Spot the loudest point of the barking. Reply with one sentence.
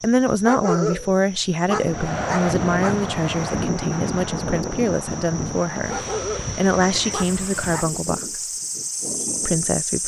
The loudest moment of the barking is at 1 second.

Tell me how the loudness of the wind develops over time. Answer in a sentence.
The volume of the wind goes down.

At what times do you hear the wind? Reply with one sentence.
The wind can be heard from 1.7 to 10.0 s.